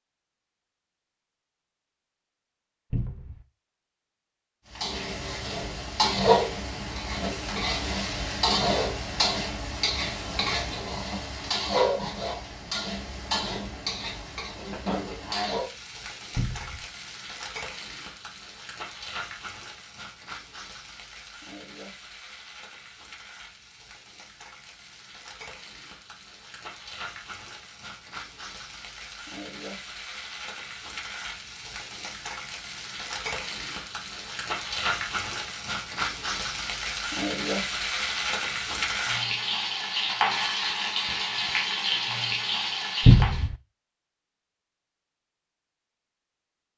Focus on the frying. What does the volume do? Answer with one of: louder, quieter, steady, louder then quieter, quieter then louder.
quieter then louder.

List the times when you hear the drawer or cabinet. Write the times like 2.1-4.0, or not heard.
2.9-3.5, 16.4-16.9, 43.0-43.5.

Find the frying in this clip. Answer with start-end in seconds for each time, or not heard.
4.7-43.5.